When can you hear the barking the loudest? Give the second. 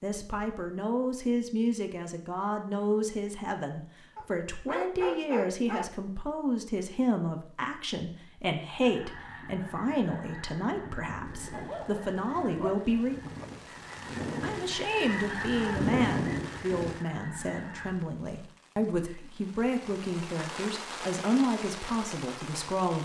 5 s.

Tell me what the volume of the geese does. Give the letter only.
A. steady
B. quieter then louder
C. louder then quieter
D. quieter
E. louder
E.